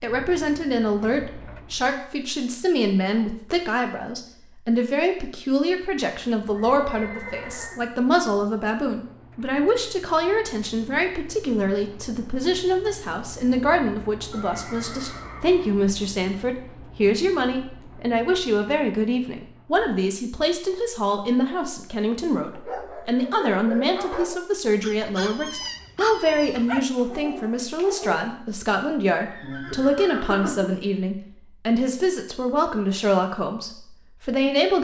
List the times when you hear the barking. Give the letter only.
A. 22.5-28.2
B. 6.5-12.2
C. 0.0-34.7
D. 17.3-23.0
A.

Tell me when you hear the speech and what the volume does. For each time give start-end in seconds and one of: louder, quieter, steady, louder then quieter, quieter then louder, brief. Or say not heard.
0.0-34.7 steady.